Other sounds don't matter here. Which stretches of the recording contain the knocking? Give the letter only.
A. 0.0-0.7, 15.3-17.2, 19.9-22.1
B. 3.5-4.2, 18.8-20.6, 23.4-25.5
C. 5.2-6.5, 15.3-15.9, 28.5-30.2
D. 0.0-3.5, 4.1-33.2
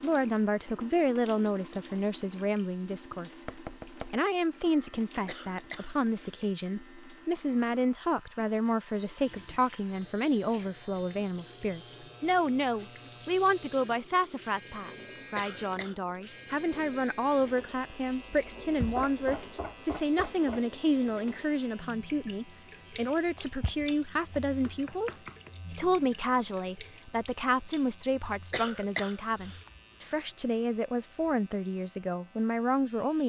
B.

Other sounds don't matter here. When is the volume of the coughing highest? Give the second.
29 s.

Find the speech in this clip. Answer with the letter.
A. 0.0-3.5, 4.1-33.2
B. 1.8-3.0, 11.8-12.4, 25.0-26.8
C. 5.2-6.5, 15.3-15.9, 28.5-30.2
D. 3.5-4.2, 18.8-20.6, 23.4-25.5
A.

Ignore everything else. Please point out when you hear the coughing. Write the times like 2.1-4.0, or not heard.
5.2-6.5, 15.3-15.9, 28.5-30.2.